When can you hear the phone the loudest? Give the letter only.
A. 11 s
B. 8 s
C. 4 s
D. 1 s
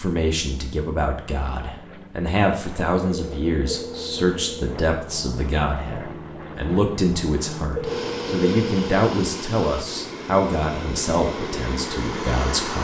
B.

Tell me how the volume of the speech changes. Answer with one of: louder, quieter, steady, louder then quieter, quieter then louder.
steady.